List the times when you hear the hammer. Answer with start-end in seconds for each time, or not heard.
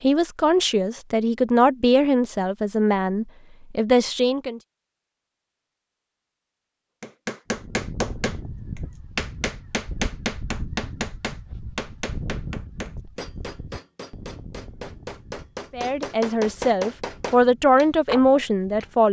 7.0-18.9.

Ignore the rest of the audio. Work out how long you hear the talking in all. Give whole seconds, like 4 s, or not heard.
8 s.